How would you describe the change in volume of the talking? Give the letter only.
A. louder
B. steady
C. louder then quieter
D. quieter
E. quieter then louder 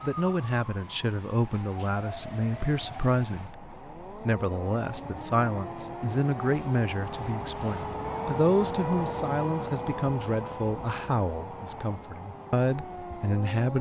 B.